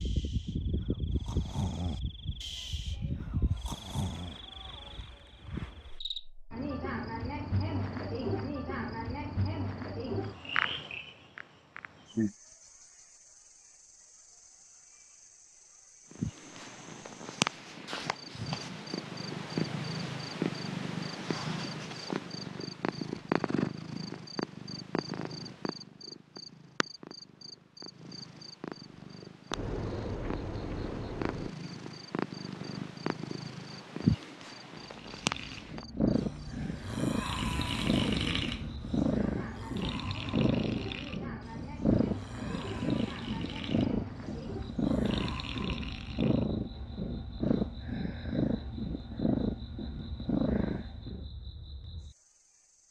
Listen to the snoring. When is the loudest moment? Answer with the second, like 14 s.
38 s.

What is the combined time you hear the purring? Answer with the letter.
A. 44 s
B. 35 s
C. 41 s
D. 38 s
B.